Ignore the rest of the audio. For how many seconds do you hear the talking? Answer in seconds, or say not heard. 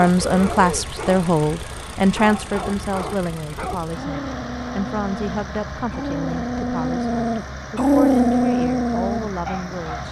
10 s.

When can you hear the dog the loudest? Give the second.
8 s.